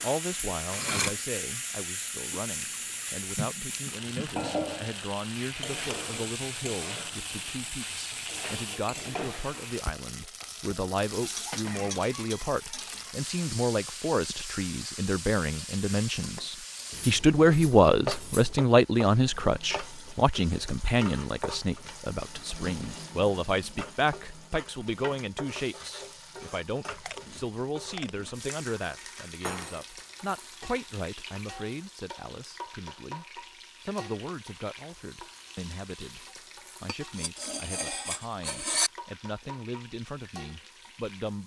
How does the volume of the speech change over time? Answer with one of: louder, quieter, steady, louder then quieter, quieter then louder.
louder then quieter.